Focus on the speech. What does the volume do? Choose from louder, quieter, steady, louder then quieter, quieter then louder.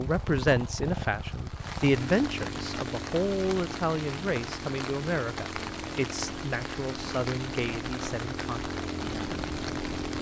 quieter.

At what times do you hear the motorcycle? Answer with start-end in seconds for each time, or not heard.
0.0-10.1.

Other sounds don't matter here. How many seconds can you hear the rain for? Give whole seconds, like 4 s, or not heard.
10 s.